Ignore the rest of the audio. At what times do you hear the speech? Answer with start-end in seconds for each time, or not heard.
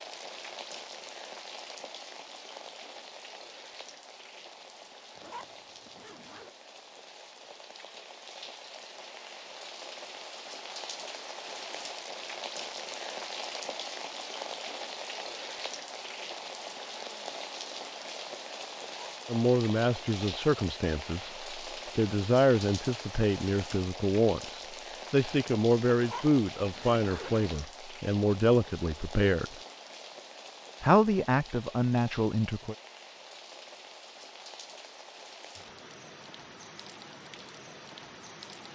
19.2-29.6, 30.8-32.8.